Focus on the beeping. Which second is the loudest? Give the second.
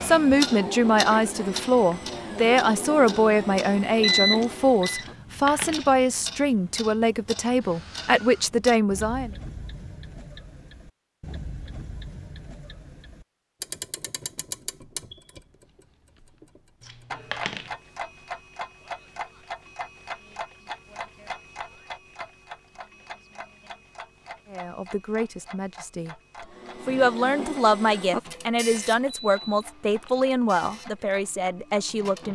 4 s.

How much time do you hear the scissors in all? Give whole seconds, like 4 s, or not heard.
2 s.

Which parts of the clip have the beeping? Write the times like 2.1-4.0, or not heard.
4.0-5.0, 15.1-16.2, 29.1-30.2.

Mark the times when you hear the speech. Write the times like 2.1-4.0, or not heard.
0.0-9.3, 24.5-32.3.